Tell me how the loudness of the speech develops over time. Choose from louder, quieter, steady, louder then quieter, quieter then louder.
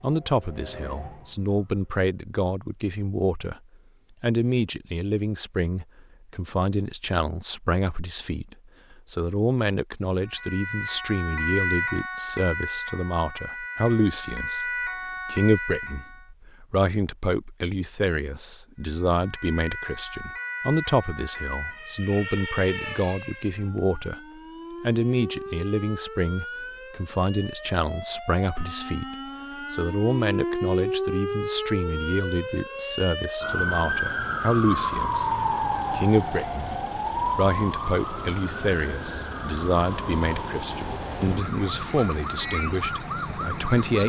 steady.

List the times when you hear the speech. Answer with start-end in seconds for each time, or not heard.
0.0-3.6, 4.2-24.2, 24.8-44.0.